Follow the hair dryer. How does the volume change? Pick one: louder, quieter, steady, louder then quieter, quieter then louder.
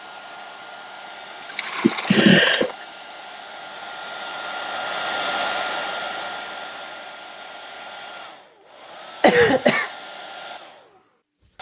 louder then quieter.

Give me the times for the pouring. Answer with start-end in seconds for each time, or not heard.
1.4-2.9.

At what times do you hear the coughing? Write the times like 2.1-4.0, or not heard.
1.8-2.6, 9.2-9.9.